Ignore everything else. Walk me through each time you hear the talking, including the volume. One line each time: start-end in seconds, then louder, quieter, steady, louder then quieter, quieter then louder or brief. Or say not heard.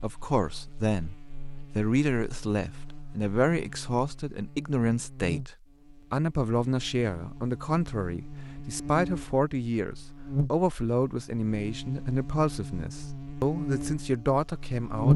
0.0-15.1 steady.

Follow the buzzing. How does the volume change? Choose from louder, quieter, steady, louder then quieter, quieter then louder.
louder.